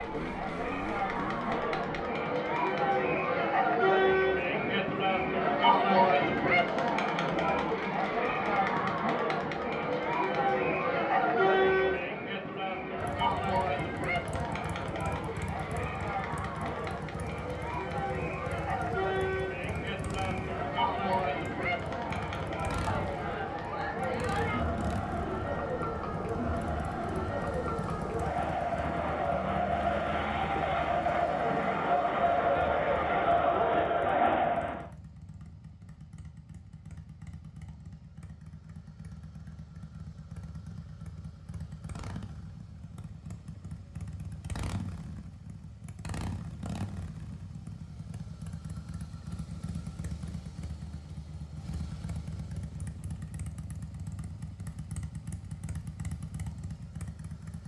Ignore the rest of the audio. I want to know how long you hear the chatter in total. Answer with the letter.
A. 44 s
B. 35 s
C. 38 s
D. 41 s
B.